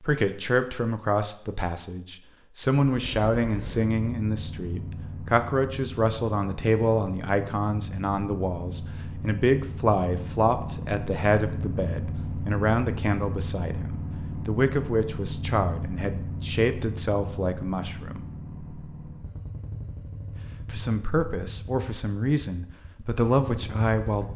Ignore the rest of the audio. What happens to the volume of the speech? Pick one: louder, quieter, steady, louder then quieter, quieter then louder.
steady.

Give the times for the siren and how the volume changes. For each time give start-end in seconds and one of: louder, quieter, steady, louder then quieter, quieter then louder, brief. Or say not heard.
not heard.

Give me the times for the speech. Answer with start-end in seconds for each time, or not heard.
0.0-18.2, 20.6-24.3.